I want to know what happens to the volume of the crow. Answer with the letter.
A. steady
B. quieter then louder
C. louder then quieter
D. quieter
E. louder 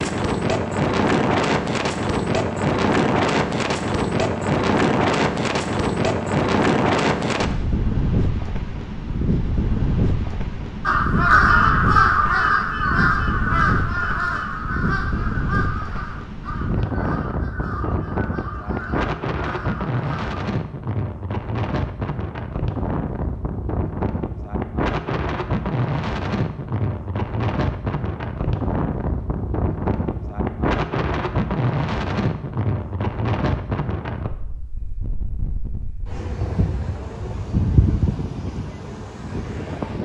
D.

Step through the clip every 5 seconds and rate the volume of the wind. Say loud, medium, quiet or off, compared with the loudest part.
loud, loud, medium, medium, medium, medium, medium, medium.